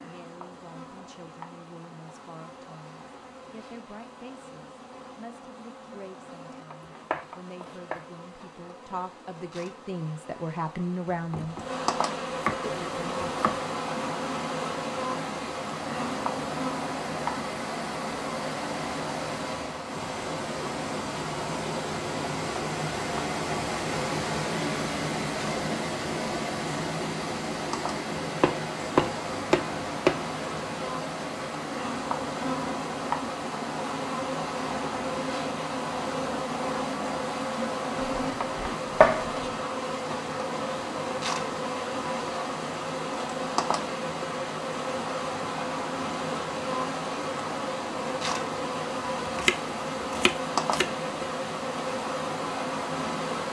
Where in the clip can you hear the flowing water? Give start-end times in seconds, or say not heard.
12.6-53.4.